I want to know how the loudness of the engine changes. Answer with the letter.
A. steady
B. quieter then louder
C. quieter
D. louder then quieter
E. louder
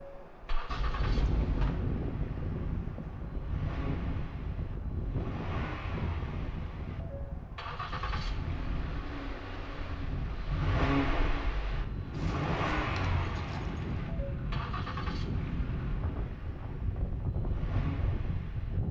D.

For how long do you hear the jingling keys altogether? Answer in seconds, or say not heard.
3 s.